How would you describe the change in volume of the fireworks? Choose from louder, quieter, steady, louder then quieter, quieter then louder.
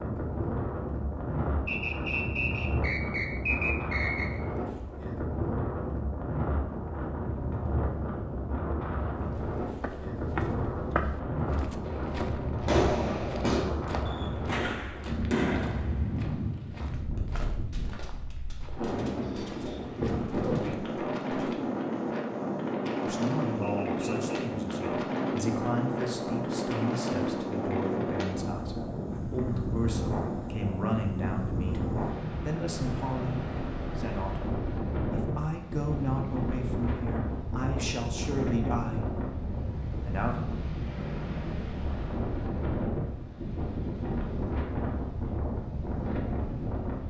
quieter.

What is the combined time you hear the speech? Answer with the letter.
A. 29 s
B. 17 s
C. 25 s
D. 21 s
B.